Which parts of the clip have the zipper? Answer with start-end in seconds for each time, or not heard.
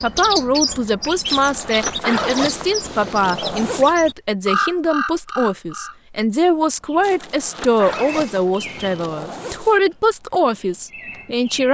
1.2-4.0, 7.0-9.8.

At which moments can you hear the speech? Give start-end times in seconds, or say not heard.
0.0-11.6.